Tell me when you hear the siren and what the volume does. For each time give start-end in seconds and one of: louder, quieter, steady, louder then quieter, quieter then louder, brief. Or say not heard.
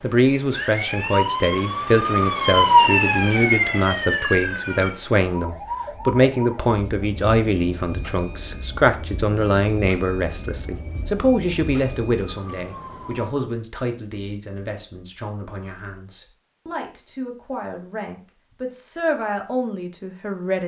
0.0-13.3 quieter.